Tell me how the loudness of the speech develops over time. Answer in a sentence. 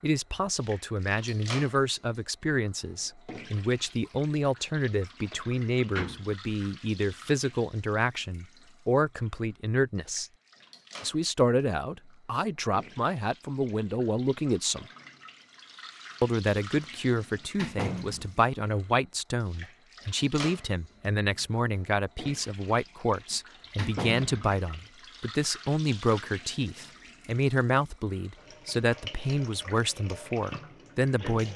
The loudness of the speech stays about the same.